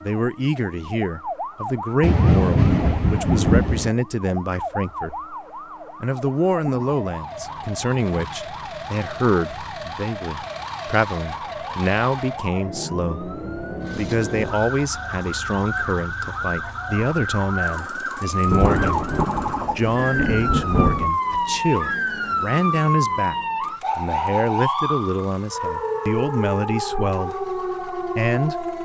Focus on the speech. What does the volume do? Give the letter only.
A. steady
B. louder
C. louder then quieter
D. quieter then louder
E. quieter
A.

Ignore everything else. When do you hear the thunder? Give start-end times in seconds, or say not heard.
2.0-3.9, 18.4-21.1.